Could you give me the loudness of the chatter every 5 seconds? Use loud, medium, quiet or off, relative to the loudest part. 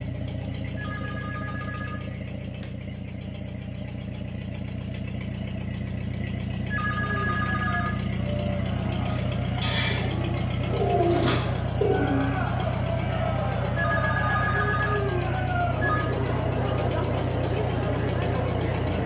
off, medium, loud, loud.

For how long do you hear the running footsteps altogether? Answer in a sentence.
The running footsteps can't be heard in this clip.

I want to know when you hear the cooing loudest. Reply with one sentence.
The loudest moment of the cooing is at 11 seconds.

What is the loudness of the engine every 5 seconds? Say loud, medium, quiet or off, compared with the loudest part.
medium, loud, loud, loud.